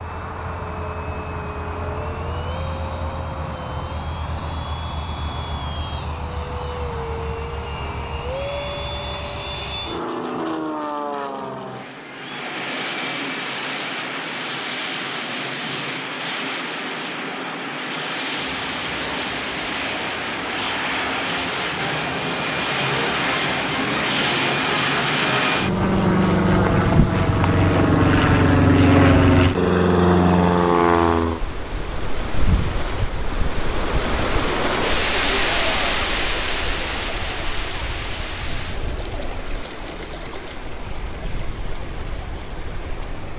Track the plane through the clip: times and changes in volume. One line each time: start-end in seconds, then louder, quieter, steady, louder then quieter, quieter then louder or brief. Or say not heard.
0.0-43.3 louder then quieter.